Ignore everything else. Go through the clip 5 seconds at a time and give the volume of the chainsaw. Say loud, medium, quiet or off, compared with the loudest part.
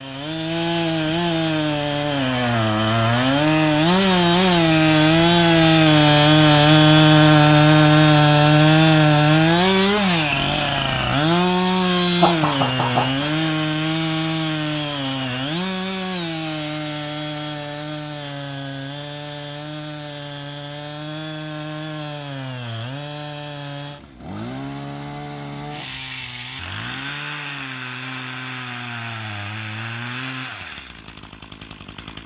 medium, loud, medium, quiet, quiet, quiet, quiet.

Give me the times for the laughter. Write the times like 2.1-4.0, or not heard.
12.2-13.6.